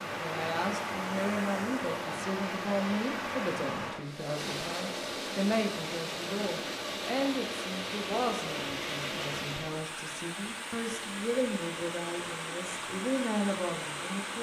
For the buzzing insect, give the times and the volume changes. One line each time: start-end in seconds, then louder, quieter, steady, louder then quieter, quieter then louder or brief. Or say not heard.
not heard.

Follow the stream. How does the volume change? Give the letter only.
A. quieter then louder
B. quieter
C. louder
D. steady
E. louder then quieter
D.